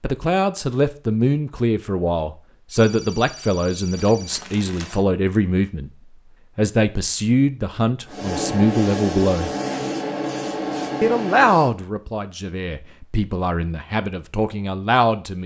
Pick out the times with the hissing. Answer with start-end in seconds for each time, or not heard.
8.1-11.7.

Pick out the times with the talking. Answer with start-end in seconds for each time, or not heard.
0.0-5.9, 6.5-9.5, 11.0-15.4.